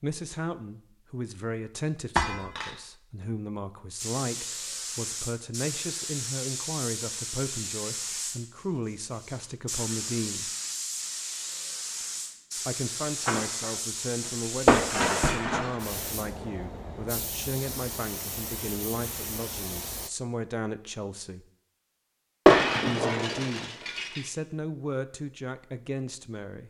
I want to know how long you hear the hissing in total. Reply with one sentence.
The hissing can be heard for 16 seconds in total.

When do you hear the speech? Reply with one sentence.
The speech can be heard from 0.0 to 10.5 s, from 12.7 to 21.4 s and from 22.8 to 26.6 s.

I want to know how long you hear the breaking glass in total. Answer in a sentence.
The breaking glass can be heard for 4 seconds in total.